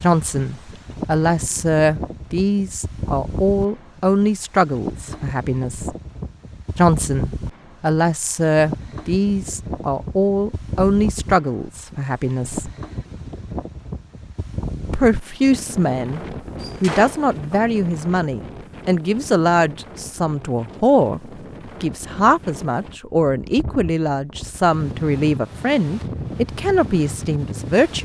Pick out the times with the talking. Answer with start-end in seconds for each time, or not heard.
0.0-6.0, 6.8-12.7, 14.9-16.2, 16.8-21.2, 21.8-28.0.